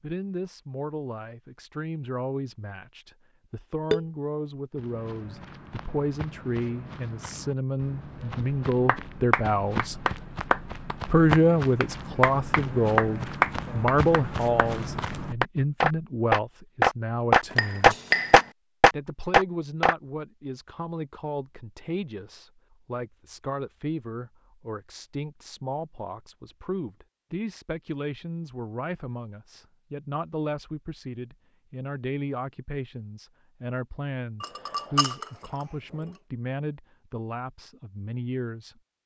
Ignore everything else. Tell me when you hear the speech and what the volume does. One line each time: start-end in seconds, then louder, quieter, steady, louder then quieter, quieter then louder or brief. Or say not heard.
0.0-10.0 louder
11.1-17.9 quieter
18.9-38.8 steady.